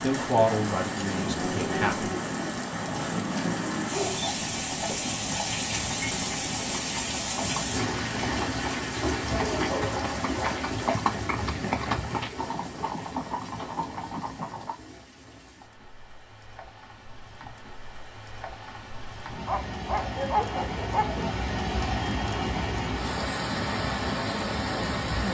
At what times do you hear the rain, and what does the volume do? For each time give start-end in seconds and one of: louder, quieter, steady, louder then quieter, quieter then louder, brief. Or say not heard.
0.0-25.3 quieter then louder.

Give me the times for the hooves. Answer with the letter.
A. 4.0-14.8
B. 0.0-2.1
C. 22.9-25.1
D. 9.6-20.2
A.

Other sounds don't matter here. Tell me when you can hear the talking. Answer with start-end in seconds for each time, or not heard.
0.0-2.1.